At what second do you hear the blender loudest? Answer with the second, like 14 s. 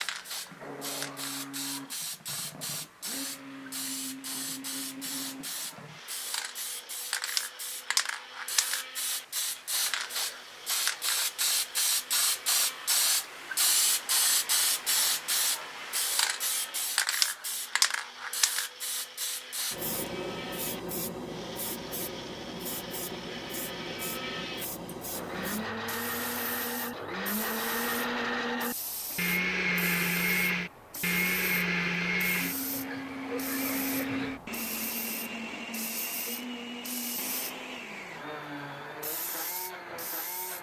30 s.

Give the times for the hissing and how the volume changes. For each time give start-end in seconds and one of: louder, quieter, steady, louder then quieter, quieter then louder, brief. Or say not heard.
0.0-40.5 louder then quieter.